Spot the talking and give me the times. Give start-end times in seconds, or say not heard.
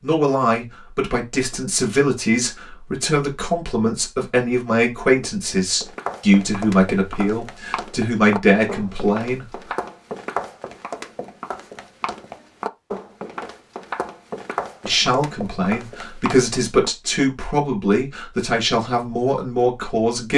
0.0-9.4, 14.8-20.3.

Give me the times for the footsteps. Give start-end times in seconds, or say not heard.
5.8-16.9.